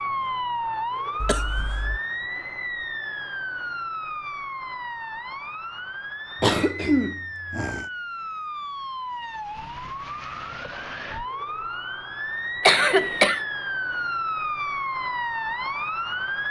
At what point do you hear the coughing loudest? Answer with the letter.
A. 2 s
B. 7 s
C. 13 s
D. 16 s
C.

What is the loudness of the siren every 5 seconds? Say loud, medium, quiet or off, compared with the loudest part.
loud, medium, loud, loud.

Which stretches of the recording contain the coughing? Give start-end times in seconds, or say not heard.
1.2-2.0, 6.4-7.8, 12.6-13.4.